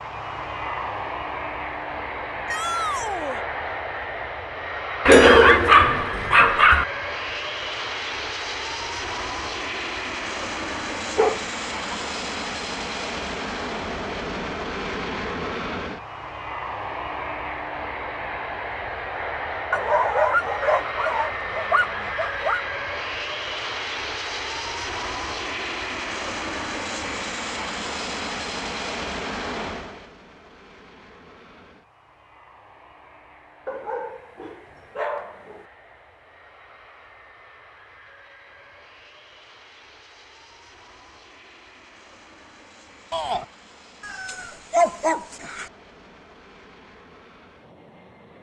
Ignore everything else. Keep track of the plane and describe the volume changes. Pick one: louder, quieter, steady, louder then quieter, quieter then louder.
quieter.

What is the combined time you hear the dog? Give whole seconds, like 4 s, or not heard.
9 s.